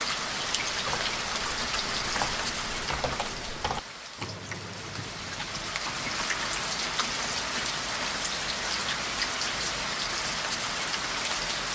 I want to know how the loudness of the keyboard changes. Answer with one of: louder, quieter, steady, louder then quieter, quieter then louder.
louder then quieter.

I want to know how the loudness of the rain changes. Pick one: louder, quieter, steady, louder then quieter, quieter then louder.
quieter then louder.